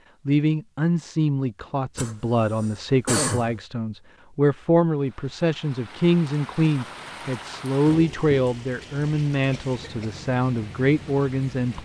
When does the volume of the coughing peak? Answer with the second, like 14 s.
3 s.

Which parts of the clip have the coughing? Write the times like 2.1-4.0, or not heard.
1.9-3.6, 9.5-10.2.